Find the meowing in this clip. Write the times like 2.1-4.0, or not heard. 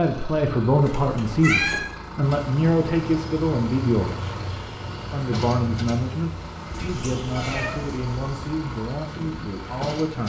0.8-1.8, 6.7-8.4.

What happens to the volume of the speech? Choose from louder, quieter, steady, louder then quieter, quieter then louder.
quieter.